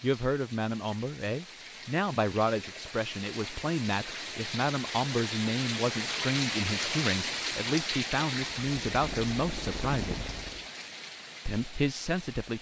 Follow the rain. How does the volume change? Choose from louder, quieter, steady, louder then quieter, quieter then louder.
louder then quieter.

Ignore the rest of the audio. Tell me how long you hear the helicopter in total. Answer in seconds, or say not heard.
2 s.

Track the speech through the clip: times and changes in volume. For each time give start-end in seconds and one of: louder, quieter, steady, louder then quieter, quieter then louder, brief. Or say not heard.
0.0-10.2 steady
11.4-12.5 brief.